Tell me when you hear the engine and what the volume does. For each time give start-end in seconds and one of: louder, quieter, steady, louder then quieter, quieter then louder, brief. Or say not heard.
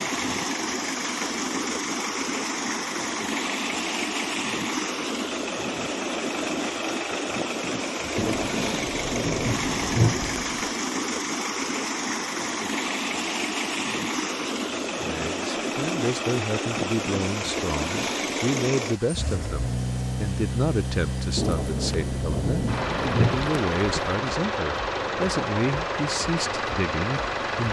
0.0-27.6 steady.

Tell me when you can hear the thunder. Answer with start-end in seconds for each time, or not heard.
8.2-10.7, 21.4-24.2.